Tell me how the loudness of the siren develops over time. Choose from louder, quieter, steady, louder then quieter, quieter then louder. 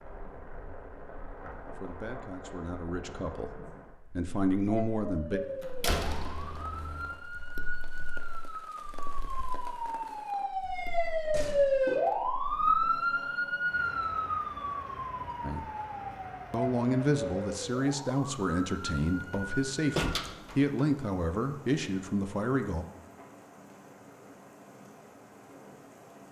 louder then quieter.